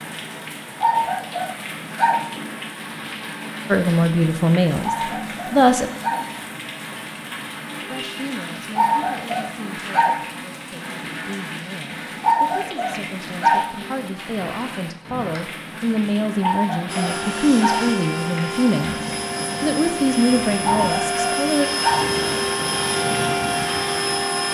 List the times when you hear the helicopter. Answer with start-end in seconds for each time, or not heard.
16.9-24.4.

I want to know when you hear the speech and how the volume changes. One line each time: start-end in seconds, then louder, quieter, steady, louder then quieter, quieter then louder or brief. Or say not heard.
3.7-5.9 brief
7.9-19.0 louder
19.6-21.7 brief.